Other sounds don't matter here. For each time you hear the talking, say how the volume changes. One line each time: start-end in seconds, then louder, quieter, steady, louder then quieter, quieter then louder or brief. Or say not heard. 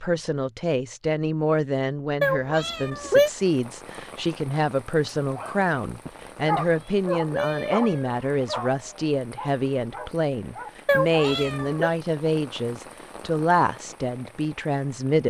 0.0-15.2 steady.